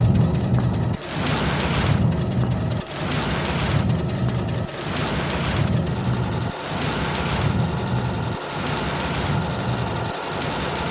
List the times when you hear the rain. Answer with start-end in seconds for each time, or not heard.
0.0-10.8.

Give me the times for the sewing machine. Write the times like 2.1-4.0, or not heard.
0.0-10.8.